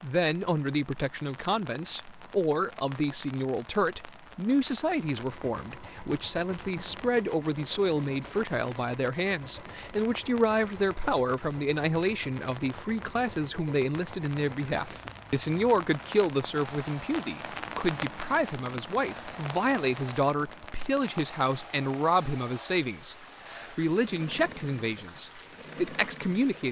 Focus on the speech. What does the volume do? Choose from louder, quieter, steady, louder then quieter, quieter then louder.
steady.